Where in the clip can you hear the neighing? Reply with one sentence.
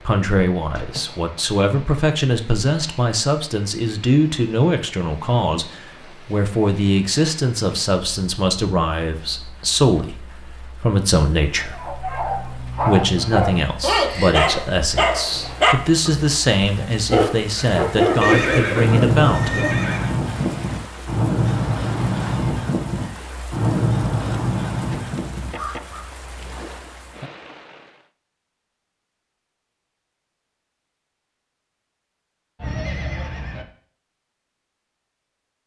The neighing can be heard from 0.8 to 1.2 s, from 18.2 to 20.1 s and from 32.6 to 33.6 s.